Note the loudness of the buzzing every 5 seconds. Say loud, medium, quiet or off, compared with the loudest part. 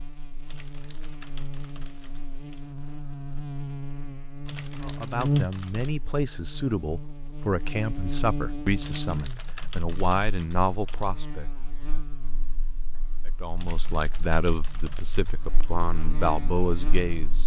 medium, loud, quiet, medium.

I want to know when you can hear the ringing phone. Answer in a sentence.
The ringing phone can't be heard in this clip.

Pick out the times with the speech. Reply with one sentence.
You can hear the speech from 4.8 to 11.5 s and from 13.2 to 17.4 s.